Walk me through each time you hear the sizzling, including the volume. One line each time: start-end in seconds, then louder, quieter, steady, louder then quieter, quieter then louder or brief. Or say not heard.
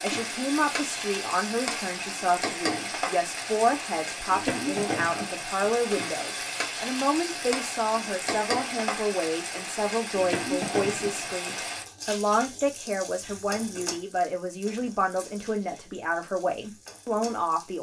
0.0-17.7 quieter.